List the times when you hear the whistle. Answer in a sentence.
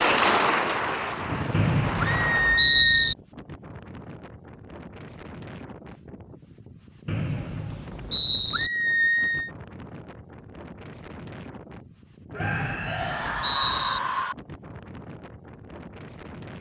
The whistle can be heard from 1.5 to 3.1 s, from 7.0 to 8.7 s and from 12.3 to 14.0 s.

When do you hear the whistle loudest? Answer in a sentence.
The loudest moment of the whistle is at 3 seconds.